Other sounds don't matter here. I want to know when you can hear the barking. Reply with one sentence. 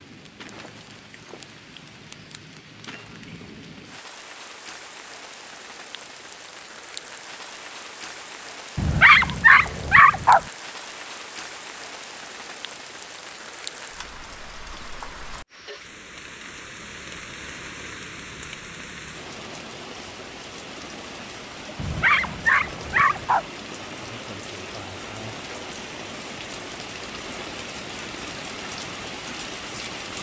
You can hear the barking from 8.8 to 10.4 s and from 21.8 to 23.4 s.